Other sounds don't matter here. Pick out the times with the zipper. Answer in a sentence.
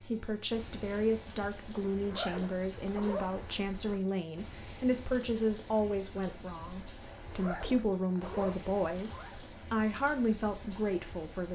You can hear the zipper from 1.8 to 3.6 s and from 7.1 to 9.4 s.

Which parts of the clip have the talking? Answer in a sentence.
The talking can be heard from 0.0 to 11.5 s.